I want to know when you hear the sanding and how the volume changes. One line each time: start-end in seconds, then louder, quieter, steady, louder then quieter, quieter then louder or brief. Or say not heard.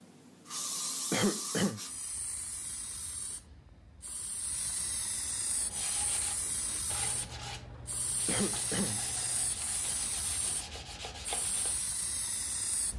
5.5-11.9 steady.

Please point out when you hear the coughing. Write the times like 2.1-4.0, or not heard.
1.1-1.8, 8.2-9.1.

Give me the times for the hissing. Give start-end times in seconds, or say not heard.
0.0-12.9.